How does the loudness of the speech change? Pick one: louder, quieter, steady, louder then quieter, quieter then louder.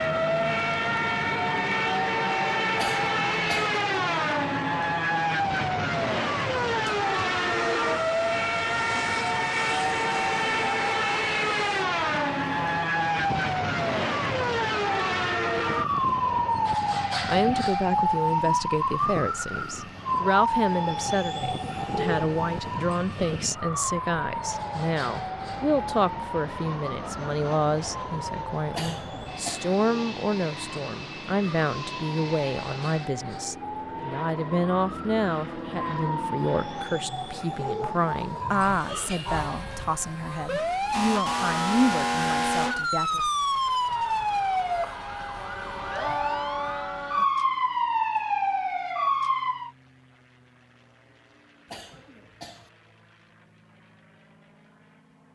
steady.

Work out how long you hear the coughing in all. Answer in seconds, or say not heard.
3 s.